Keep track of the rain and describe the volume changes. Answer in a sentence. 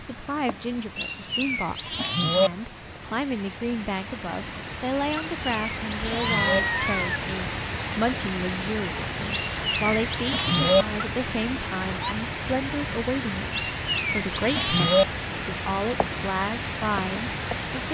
The volume of the rain goes up.